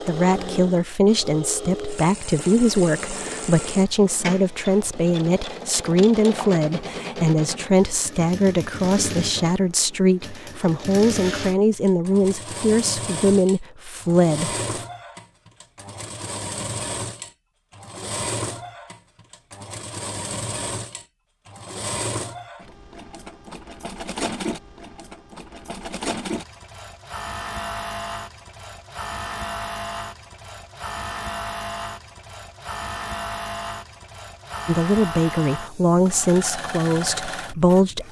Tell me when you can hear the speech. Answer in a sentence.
You can hear the speech from 0.1 to 14.7 s and from 34.6 to 38.0 s.